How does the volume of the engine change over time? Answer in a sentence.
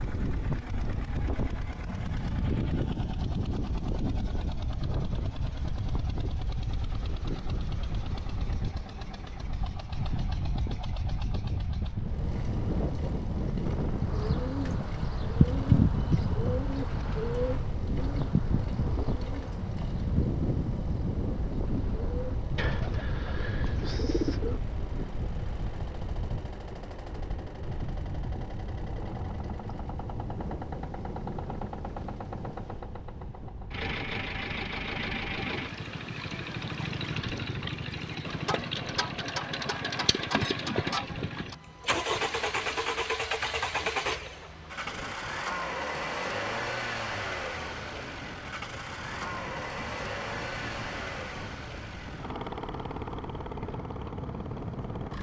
The volume of the engine goes up.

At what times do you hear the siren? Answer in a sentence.
You can't hear the siren here.